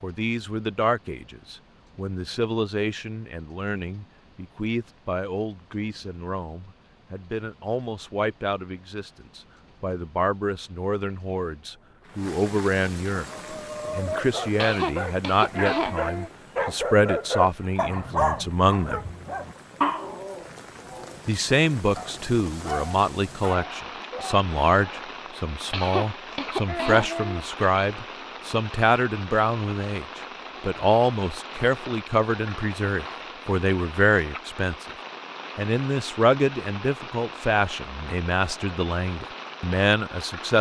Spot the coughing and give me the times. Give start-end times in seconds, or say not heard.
14.6-16.3, 25.7-27.4.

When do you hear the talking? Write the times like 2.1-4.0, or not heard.
0.0-19.0, 21.2-34.9, 35.5-40.5.